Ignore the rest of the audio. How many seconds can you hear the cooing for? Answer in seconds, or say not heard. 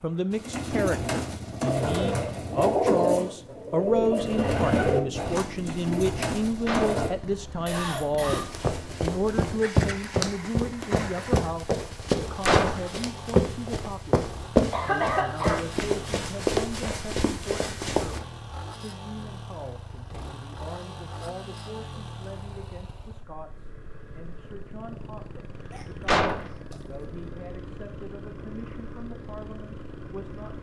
7 s.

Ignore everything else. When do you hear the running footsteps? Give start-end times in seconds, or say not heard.
8.2-18.2.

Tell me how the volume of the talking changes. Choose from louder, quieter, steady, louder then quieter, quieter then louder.
quieter.